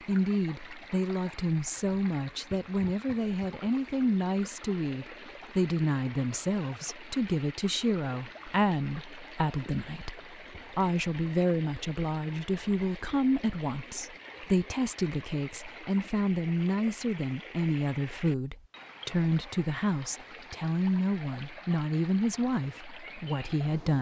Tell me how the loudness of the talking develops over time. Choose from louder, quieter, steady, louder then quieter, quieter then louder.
steady.